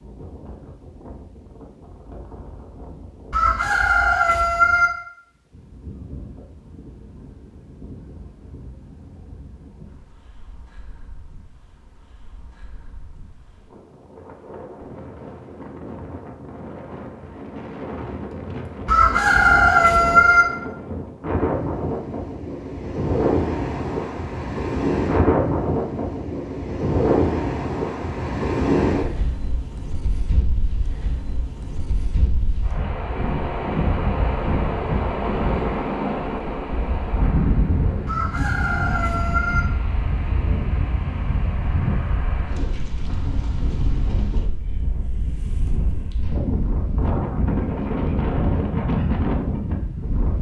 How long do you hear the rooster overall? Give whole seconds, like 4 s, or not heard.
5 s.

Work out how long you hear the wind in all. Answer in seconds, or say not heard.
50 s.